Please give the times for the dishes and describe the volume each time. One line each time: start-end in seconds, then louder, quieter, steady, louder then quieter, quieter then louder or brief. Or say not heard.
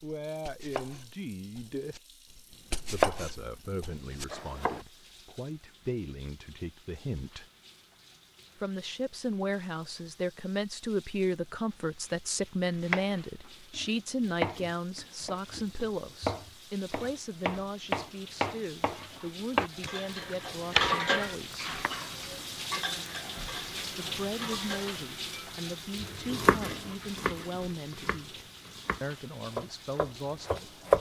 19.8-25.6 quieter.